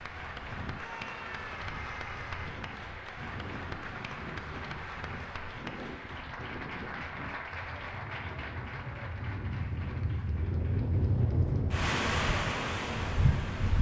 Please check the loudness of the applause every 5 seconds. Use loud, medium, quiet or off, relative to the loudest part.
loud, loud, quiet.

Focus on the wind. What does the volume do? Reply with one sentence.
The loudness of the wind goes up.